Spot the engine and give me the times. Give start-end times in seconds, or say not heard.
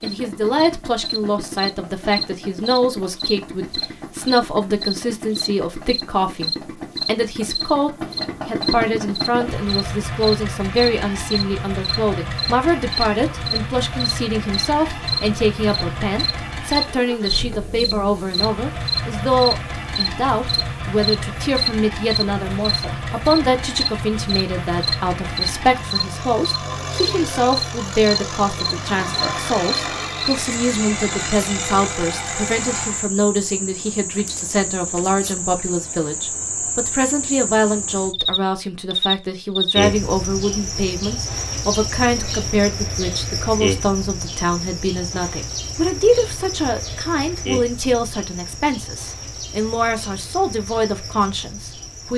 0.0-33.1.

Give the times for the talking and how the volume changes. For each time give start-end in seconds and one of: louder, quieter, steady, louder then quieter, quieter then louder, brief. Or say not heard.
0.0-52.1 steady.